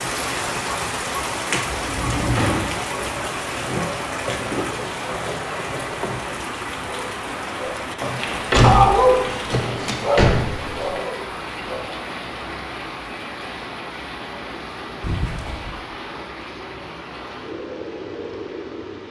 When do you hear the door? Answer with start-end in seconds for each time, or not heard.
1.7-2.7, 8.5-10.9, 15.0-15.8.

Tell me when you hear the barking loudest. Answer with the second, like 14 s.
9 s.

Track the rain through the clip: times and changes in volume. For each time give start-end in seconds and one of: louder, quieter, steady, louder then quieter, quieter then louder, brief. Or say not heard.
0.0-19.0 quieter.